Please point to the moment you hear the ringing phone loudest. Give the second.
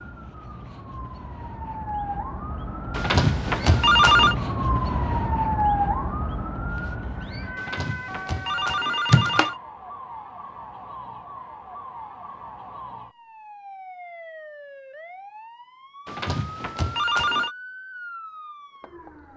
4 s.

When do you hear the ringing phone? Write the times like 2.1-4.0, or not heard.
3.0-4.3, 7.5-9.6, 16.1-17.6.